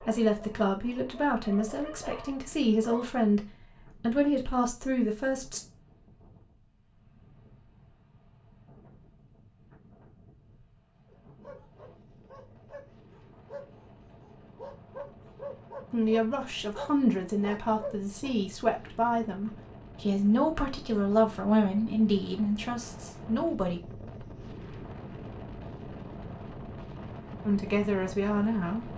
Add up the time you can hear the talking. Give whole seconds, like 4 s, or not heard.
15 s.